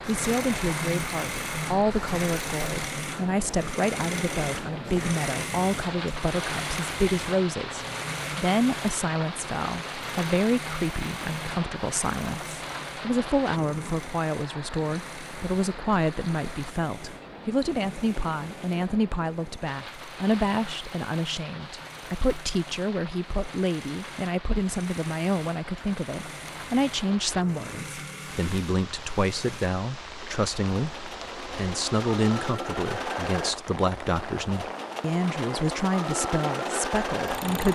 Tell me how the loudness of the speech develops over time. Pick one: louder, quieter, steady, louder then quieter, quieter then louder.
steady.